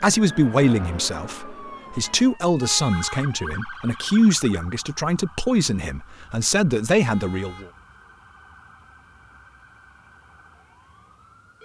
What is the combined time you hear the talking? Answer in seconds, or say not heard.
8 s.